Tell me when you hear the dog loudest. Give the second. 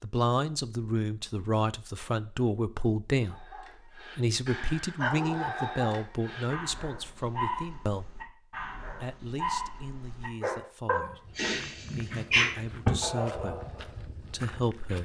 12 s.